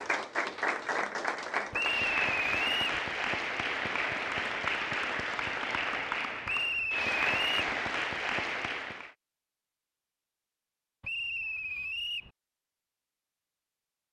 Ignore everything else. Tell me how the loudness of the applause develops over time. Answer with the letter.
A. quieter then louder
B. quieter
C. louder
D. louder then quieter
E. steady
E.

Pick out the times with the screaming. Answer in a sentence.
The screaming can't be heard in this clip.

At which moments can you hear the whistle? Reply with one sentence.
You can hear the whistle from 1.7 to 3.0 s, from 6.5 to 7.8 s and from 11.0 to 12.3 s.